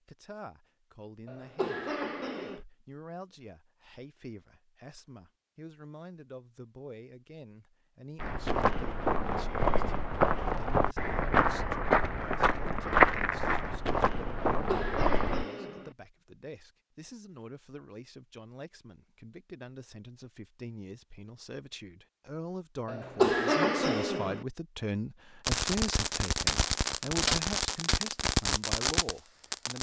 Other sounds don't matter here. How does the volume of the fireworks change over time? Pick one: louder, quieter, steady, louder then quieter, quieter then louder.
steady.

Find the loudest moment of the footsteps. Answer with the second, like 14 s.
13 s.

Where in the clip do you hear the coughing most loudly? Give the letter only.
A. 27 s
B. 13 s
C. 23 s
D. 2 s
C.